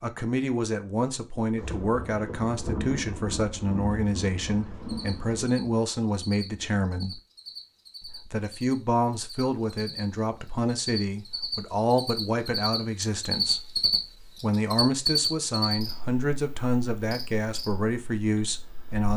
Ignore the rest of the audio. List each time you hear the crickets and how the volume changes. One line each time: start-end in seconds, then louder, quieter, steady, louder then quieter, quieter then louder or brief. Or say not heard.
4.8-19.1 louder then quieter.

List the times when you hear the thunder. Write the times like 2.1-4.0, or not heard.
1.6-5.5.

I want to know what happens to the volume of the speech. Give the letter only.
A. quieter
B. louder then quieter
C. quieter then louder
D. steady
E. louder
D.